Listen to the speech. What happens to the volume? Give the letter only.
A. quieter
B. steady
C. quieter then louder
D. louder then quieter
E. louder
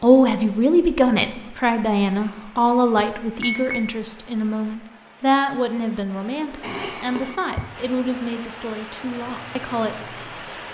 A.